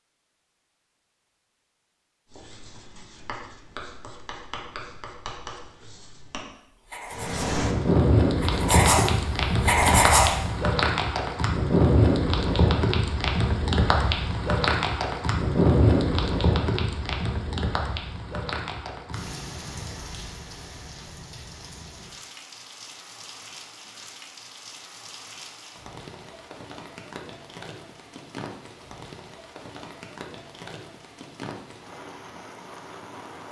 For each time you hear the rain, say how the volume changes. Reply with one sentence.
You can hear the rain from 7.1 to 33.4 s, getting quieter.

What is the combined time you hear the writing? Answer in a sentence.
You can hear the writing for 7 seconds altogether.